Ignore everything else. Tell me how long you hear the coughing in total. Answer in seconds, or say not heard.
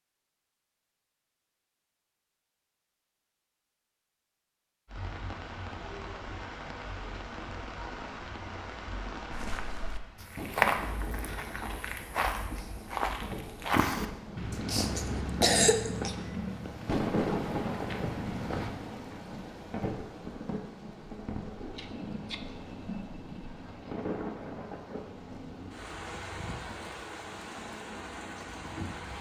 2 s.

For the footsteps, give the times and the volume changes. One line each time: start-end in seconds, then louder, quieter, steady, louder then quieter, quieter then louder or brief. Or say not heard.
9.3-18.7 quieter.